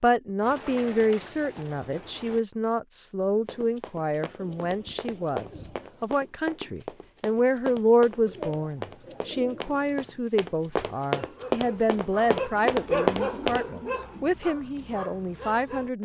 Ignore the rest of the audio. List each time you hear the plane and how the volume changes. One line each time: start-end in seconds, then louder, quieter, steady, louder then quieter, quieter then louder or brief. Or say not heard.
not heard.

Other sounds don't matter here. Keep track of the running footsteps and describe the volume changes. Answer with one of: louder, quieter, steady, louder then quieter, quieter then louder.
louder.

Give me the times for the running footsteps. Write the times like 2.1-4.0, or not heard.
3.5-13.7.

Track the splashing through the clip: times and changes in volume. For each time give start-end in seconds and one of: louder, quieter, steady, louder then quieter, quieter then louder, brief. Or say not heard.
not heard.